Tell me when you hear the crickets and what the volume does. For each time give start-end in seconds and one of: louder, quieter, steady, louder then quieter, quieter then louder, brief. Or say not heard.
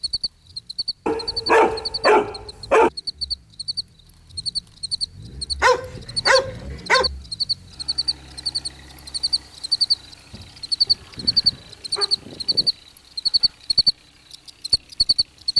0.0-15.5 louder.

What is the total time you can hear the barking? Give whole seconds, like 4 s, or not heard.
5 s.